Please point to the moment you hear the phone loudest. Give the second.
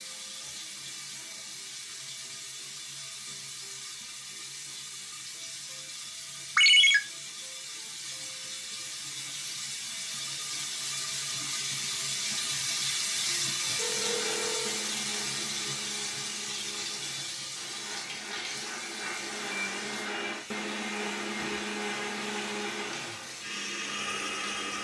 7 s.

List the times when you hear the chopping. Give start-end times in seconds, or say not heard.
not heard.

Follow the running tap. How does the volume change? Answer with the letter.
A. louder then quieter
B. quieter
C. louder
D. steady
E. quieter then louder
A.